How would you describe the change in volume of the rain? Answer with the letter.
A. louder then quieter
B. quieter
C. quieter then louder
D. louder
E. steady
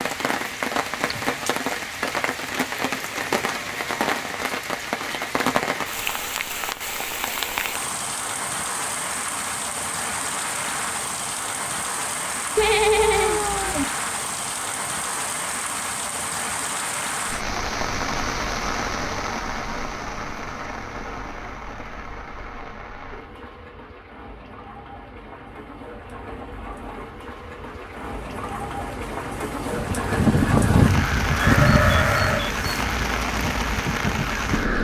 C.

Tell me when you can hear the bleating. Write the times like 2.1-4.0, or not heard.
12.6-13.8, 31.4-32.6.